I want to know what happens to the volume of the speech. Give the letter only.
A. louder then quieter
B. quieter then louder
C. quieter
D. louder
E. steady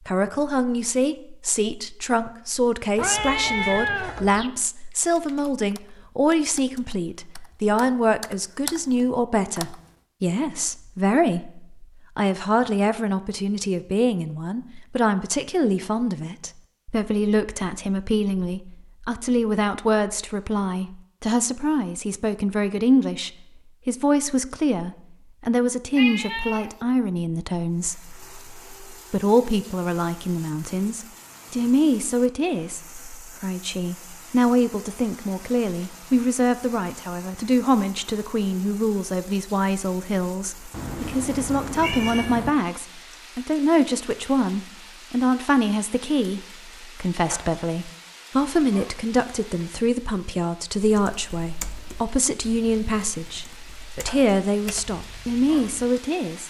E.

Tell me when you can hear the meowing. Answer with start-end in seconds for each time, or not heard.
3.0-4.5, 25.9-26.9, 40.7-42.5.